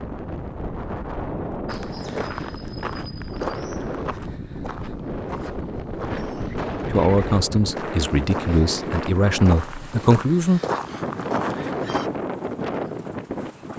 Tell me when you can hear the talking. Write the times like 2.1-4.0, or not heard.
6.9-10.6.